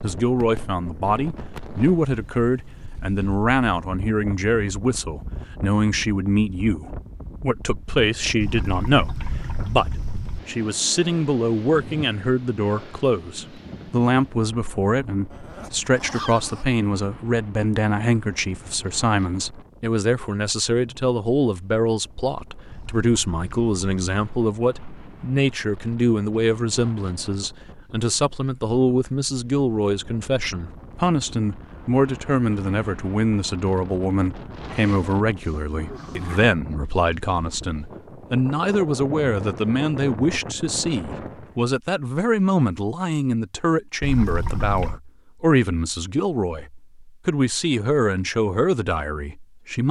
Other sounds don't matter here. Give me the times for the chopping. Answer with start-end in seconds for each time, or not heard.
not heard.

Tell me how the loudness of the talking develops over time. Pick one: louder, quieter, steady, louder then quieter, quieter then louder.
steady.